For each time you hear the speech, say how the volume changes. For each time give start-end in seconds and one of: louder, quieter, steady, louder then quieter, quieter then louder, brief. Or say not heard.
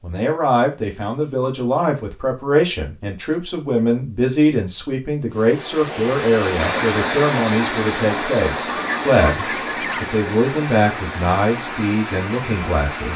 0.0-13.1 steady.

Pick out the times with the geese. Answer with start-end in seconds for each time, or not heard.
8.7-10.2.